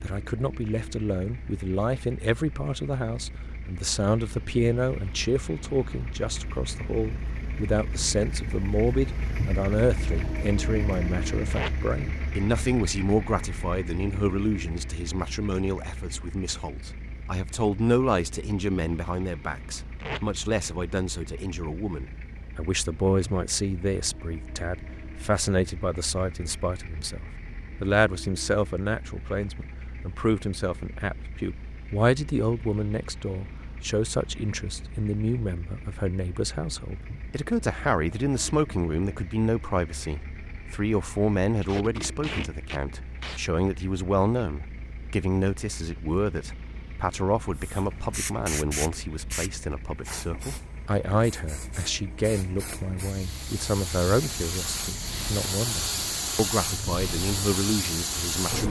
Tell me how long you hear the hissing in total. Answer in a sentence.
The hissing can be heard for 11 seconds in total.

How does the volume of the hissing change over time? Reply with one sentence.
The volume of the hissing goes down, then up.